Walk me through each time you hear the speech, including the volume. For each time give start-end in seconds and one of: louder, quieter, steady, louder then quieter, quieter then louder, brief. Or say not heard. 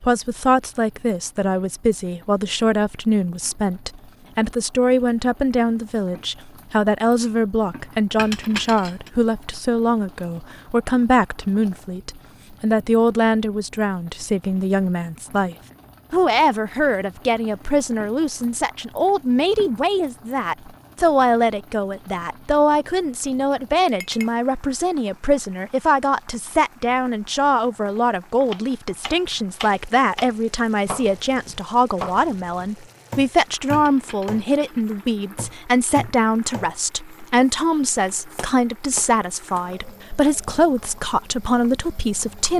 0.0-42.5 steady.